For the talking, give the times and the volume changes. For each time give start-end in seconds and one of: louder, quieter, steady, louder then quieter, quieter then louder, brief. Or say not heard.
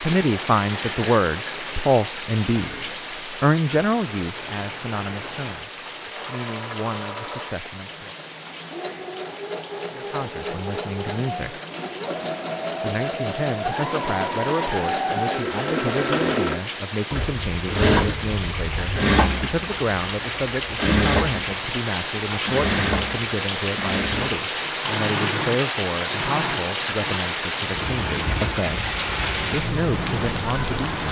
0.0-8.2 quieter
9.9-11.6 brief
12.8-30.9 steady.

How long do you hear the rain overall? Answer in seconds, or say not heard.
31 s.